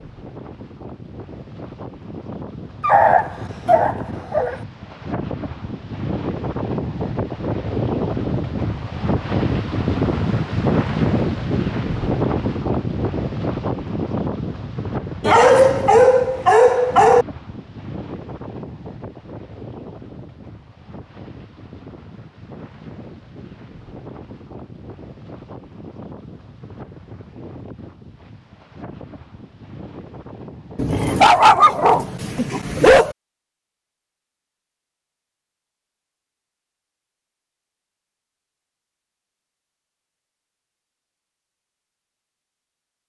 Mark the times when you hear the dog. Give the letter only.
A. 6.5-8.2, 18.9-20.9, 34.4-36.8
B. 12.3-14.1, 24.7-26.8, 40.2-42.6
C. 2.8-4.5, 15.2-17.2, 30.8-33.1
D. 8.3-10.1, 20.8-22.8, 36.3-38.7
C.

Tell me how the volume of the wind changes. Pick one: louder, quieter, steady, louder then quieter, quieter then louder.
louder then quieter.